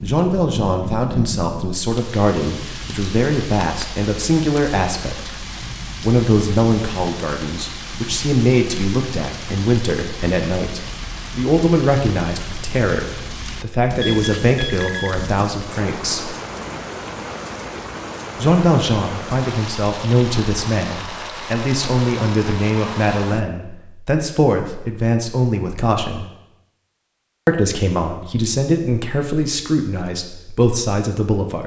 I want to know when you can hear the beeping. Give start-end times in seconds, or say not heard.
14.0-15.1.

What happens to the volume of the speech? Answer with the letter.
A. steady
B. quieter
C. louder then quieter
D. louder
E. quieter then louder
A.